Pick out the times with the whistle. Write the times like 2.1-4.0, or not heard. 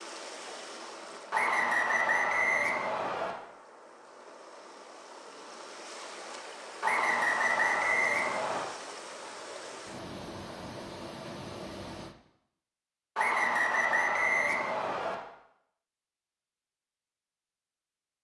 1.3-3.4, 6.8-8.7, 13.2-15.2.